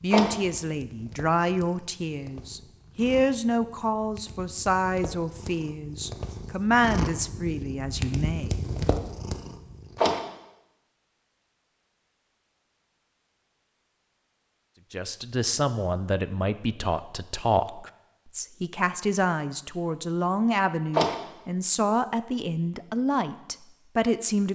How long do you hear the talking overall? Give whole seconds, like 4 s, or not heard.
18 s.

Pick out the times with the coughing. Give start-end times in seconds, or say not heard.
not heard.